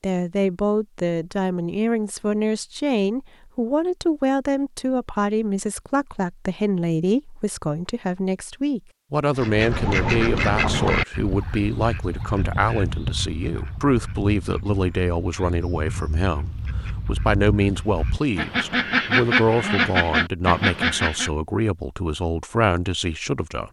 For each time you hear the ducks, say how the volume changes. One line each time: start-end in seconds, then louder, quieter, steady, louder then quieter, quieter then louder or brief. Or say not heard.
9.3-21.3 quieter then louder.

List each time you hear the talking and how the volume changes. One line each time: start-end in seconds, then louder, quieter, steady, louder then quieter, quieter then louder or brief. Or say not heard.
0.0-23.6 steady.